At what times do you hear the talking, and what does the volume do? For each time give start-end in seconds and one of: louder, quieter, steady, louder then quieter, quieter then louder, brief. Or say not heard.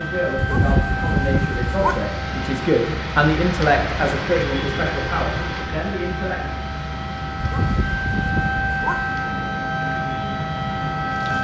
0.0-6.4 louder then quieter.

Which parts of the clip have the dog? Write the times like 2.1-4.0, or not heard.
0.3-2.1, 7.4-9.2.